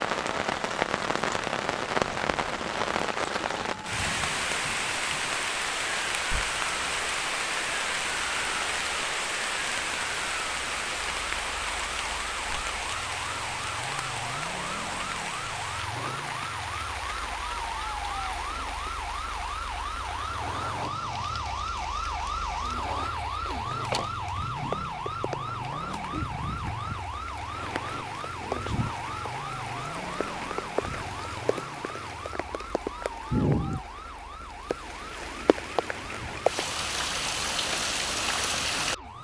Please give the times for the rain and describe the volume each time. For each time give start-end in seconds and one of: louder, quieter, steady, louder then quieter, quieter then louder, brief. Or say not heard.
0.0-39.0 quieter then louder.